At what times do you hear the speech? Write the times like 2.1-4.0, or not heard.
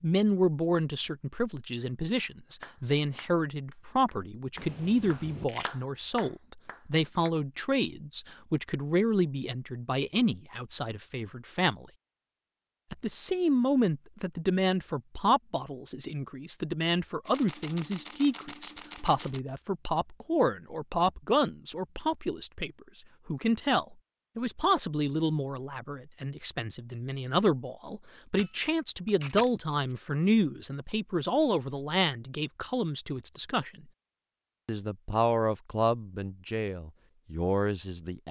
0.0-11.8, 12.9-33.9, 34.6-38.2.